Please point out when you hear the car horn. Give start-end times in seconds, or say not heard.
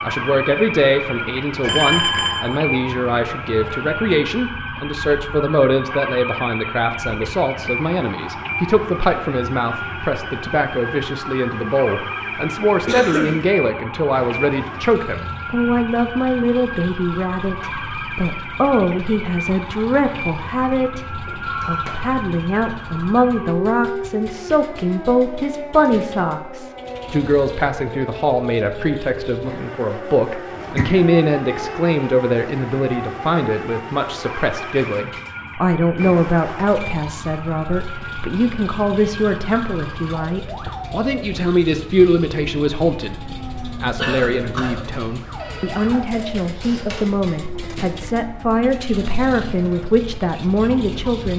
not heard.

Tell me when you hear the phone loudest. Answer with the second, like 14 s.
2 s.